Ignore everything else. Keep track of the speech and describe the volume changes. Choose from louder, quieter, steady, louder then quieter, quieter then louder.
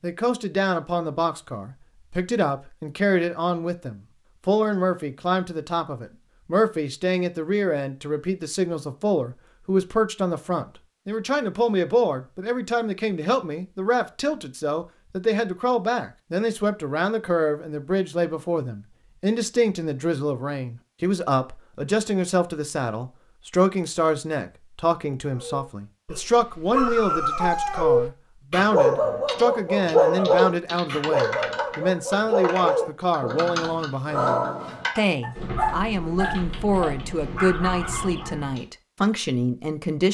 steady.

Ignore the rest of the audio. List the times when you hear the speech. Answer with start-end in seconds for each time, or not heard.
0.0-40.0.